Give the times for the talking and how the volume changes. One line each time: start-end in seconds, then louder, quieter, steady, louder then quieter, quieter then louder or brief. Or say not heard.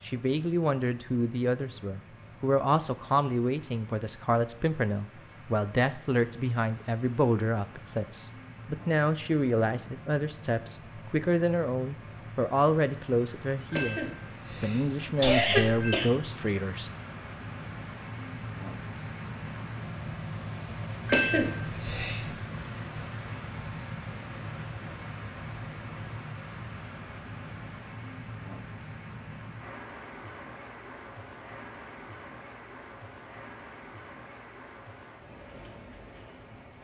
0.0-16.9 steady.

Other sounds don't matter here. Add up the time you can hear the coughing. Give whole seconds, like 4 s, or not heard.
4 s.